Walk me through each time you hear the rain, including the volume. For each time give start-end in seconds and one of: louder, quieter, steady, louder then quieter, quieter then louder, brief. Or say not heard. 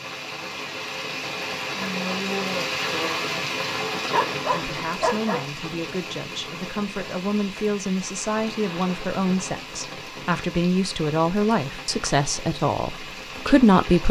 0.0-14.0 quieter.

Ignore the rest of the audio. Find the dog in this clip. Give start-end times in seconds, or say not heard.
3.9-5.5.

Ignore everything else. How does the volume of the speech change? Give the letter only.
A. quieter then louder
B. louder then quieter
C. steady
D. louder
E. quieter
D.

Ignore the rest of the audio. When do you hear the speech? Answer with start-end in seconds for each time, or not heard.
4.5-14.0.